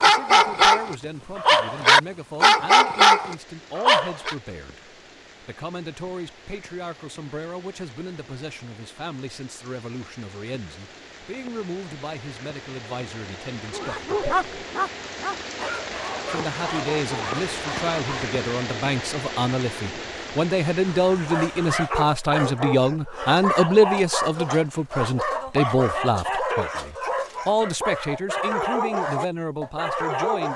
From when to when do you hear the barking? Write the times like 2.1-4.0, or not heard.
0.0-4.3, 13.7-18.3, 21.2-30.5.